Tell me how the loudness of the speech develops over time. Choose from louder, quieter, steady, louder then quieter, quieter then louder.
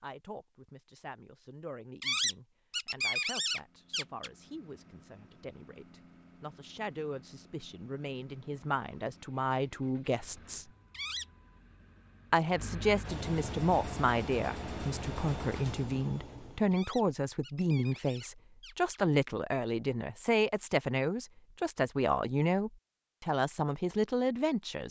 louder.